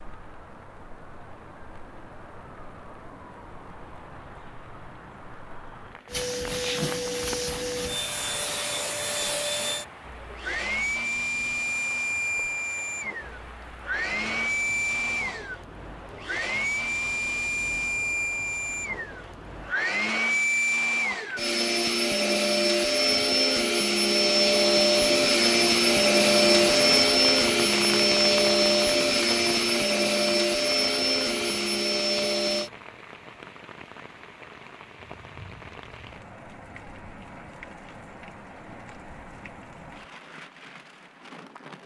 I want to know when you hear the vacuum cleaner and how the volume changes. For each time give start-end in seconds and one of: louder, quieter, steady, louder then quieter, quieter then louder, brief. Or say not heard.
6.0-32.7 louder.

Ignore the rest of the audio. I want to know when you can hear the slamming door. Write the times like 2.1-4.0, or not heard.
not heard.